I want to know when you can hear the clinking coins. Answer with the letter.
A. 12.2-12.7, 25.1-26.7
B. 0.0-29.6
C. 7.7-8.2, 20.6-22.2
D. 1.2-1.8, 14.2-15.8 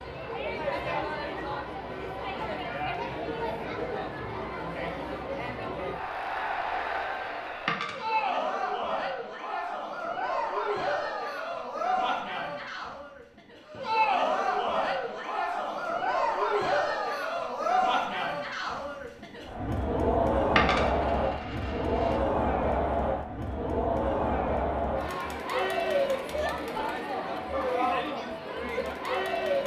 C.